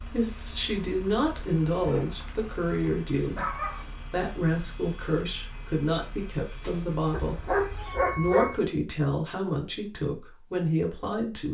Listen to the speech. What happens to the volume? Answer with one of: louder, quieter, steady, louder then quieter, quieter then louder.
steady.